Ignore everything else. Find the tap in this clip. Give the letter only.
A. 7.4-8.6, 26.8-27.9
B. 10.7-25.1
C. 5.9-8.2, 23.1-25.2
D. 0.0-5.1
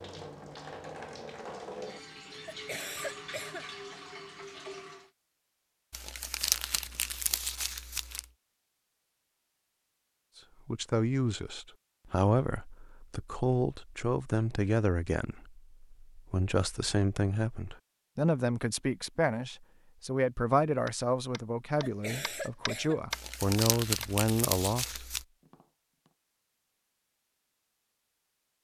D.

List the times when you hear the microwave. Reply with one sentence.
You can't hear the microwave here.